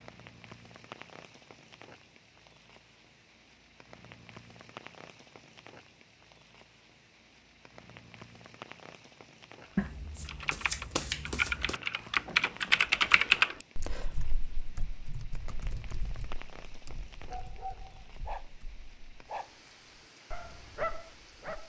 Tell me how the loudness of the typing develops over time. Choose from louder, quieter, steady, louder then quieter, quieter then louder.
louder then quieter.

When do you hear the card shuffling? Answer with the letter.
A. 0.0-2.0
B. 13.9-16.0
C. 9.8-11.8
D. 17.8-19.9
C.